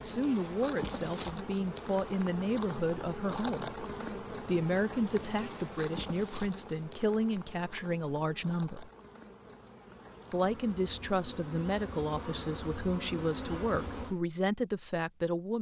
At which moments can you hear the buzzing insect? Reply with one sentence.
The buzzing insect can be heard from 0.0 to 14.2 s.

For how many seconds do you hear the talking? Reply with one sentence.
You can hear the talking for 14 seconds altogether.